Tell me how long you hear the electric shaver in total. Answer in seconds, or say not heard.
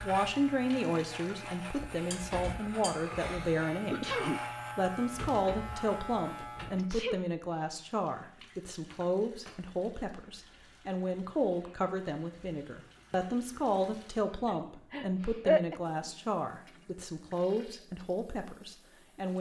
7 s.